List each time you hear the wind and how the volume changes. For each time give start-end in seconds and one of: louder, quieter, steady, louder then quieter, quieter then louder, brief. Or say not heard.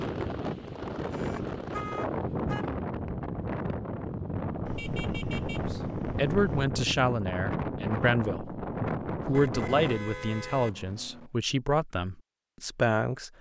0.0-10.0 steady.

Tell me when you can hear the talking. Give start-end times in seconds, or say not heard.
5.7-13.3.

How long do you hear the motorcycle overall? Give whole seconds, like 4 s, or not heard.
not heard.